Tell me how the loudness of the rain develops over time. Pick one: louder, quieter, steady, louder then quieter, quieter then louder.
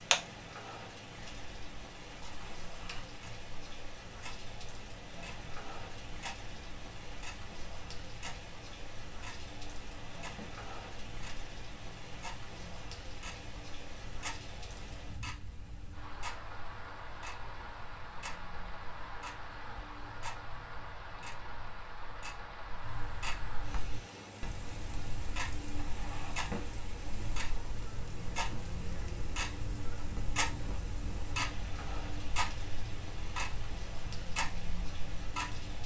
steady.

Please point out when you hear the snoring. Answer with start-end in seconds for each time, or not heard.
not heard.